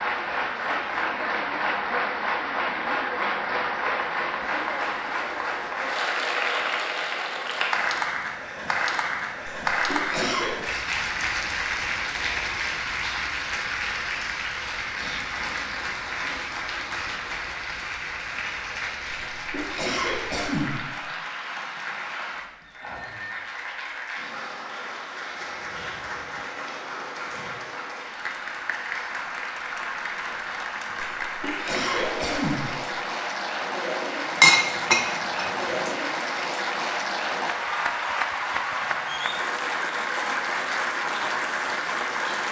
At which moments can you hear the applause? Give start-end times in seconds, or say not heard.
0.0-42.4.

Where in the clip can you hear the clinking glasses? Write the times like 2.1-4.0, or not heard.
34.4-35.9.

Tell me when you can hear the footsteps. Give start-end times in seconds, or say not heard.
not heard.